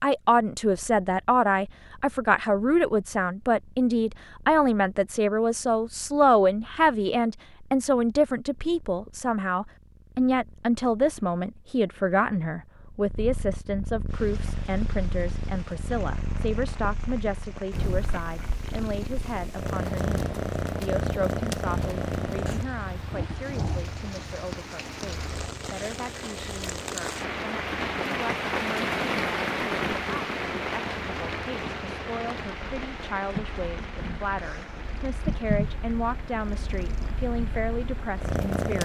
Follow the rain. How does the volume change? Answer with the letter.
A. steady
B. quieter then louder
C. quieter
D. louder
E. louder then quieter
E.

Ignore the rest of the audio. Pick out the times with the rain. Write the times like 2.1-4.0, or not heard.
14.1-38.7.